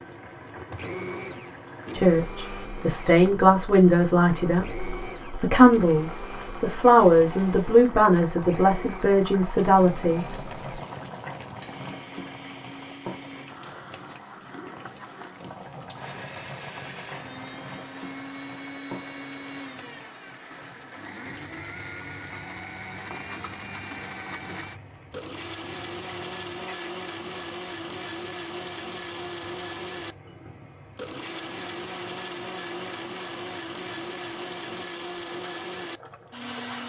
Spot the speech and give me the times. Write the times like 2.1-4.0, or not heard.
1.9-10.2.